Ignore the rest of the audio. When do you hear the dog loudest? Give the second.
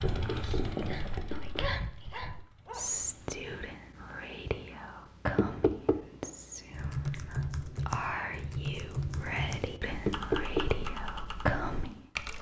1 s.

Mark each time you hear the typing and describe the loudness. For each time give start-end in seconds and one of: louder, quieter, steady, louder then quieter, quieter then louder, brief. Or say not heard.
6.7-12.3 quieter.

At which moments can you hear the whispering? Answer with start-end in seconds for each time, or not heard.
0.8-12.1.